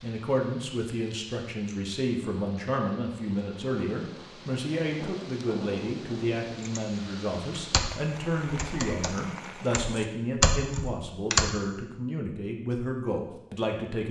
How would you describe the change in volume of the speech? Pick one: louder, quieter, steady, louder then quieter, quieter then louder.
steady.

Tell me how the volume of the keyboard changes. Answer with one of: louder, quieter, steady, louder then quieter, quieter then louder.
quieter then louder.